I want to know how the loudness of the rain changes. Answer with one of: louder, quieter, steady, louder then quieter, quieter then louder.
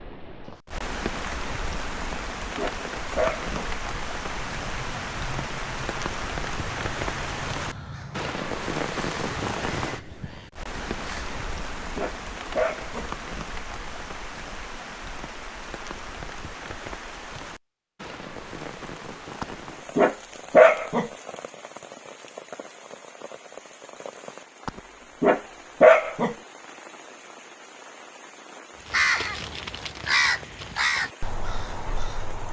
quieter.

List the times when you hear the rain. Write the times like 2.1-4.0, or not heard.
0.0-32.4.